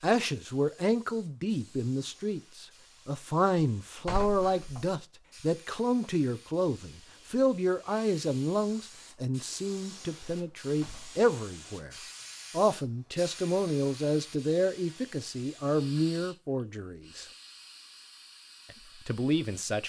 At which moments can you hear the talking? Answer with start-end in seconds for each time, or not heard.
0.0-17.2, 18.7-19.8.